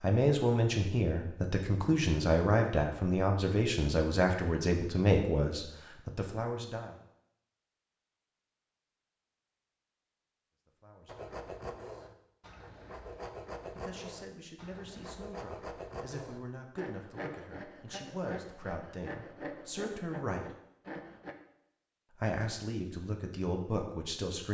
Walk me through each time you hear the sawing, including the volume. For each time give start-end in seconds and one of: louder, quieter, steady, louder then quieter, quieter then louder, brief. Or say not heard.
11.1-21.4 steady.